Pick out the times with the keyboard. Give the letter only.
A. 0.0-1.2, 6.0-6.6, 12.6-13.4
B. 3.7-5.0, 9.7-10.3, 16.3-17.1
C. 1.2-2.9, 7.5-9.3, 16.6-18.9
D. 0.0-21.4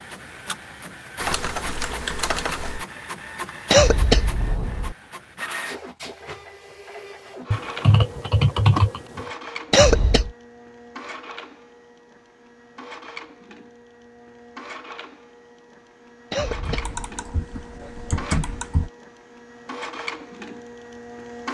C.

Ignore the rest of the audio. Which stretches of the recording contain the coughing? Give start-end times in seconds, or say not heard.
3.7-5.0, 9.7-10.3, 16.3-17.1.